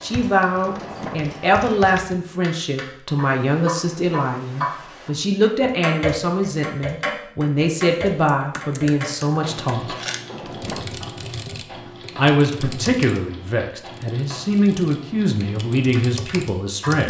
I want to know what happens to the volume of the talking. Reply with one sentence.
The loudness of the talking stays about the same.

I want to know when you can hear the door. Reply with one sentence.
You can hear the door from 0.6 to 1.4 s and from 10.2 to 10.9 s.